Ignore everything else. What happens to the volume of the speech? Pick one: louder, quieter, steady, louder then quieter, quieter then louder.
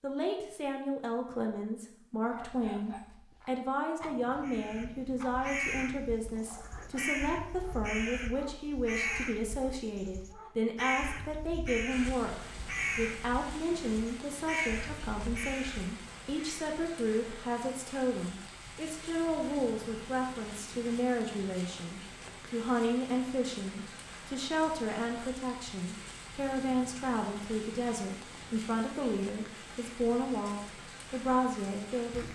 steady.